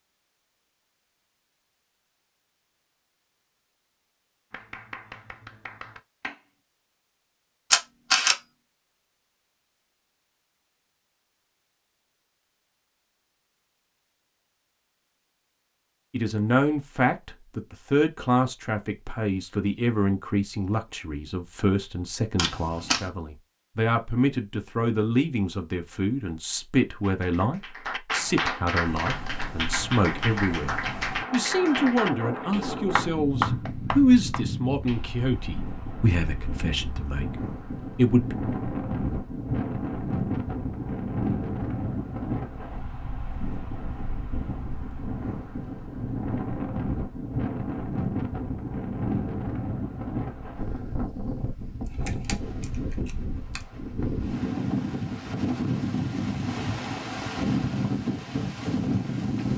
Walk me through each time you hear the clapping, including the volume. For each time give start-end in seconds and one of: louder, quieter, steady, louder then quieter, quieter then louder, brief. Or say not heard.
4.5-6.4 brief
27.0-35.2 steady.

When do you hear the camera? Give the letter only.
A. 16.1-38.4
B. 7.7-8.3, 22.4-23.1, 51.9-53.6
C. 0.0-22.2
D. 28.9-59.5
B.